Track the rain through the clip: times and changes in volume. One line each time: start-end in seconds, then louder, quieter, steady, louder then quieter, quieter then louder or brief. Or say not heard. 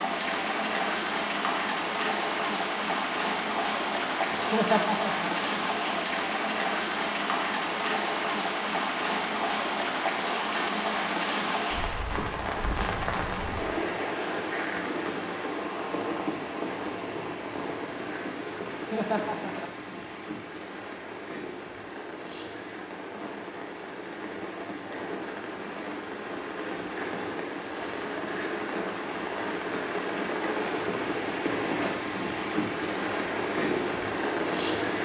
0.0-35.0 quieter then louder.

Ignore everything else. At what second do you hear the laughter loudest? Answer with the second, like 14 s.
5 s.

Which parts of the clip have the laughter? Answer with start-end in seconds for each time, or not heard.
4.3-5.5, 18.7-20.1.